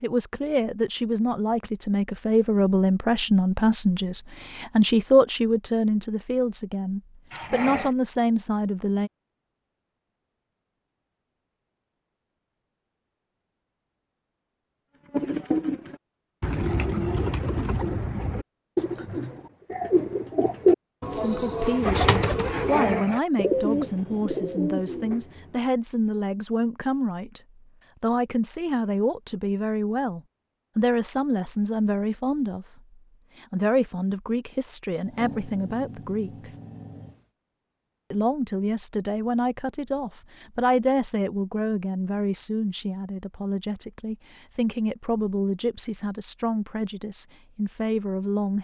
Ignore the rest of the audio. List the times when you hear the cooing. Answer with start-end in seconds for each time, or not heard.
15.1-25.6.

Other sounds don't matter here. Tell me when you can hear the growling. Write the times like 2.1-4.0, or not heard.
7.3-8.0, 21.6-23.2, 35.0-37.2.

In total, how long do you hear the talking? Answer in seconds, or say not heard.
34 s.